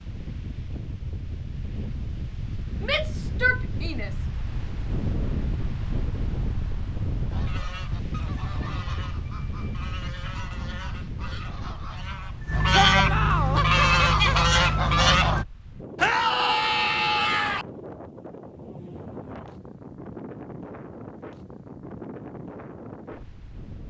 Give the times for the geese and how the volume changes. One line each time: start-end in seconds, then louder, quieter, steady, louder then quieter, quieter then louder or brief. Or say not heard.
7.3-15.4 louder.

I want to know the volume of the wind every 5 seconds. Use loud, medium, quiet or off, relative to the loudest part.
loud, loud, medium, medium, medium.